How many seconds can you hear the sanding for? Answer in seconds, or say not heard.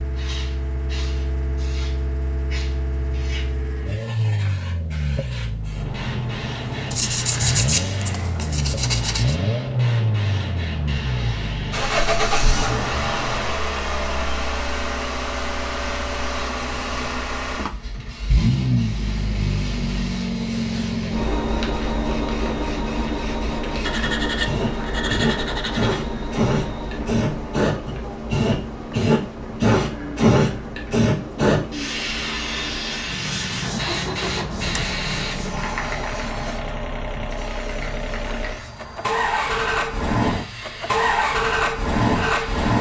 7 s.